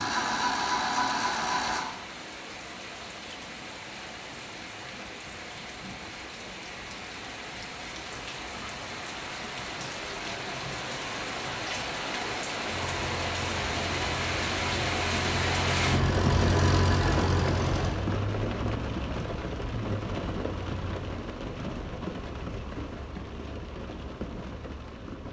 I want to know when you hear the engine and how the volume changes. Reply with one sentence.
You can hear the engine briefly from 0.0 to 1.9 s; and from 12.7 to 17.9 s, getting louder.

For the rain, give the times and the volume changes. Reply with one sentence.
You can hear the rain from 0.0 to 25.2 s, getting louder then quieter.